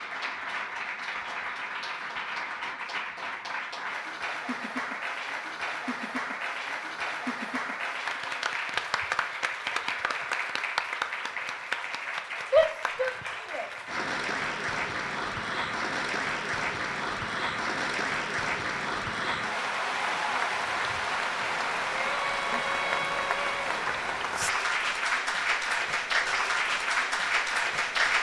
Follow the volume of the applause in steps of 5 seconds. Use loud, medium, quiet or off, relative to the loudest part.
medium, medium, medium, loud, loud, loud.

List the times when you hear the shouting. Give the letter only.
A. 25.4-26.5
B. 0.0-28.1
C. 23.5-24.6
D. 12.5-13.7
D.